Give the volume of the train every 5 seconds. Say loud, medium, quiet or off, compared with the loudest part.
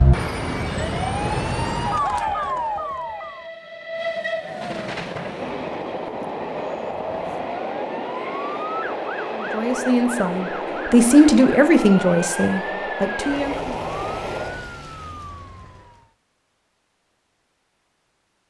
loud, loud, loud, off.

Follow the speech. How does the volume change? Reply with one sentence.
The loudness of the speech goes up, then down.